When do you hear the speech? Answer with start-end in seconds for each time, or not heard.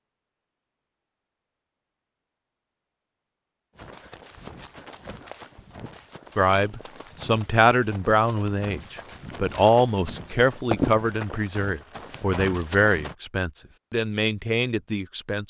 6.3-15.4.